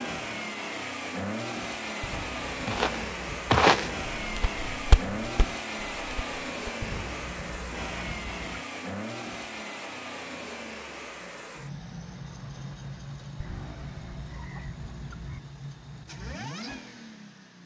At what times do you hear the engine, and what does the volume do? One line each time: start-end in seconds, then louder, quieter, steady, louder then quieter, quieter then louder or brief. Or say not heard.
0.0-17.6 quieter.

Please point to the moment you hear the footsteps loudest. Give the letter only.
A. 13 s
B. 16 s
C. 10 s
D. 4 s
D.